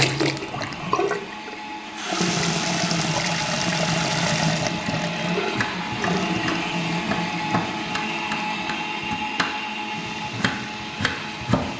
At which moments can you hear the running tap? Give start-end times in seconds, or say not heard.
0.0-11.4.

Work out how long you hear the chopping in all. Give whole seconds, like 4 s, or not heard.
7 s.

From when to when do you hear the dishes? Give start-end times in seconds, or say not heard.
not heard.